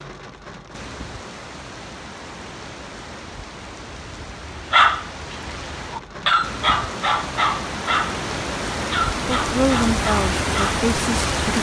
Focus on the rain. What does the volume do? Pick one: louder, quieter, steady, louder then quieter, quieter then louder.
louder.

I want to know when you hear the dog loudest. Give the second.
5 s.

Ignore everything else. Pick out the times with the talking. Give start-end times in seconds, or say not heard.
9.2-11.5.